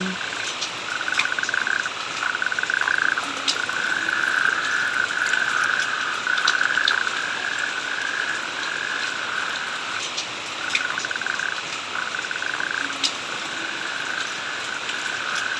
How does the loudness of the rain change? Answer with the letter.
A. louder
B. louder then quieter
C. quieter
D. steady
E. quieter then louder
D.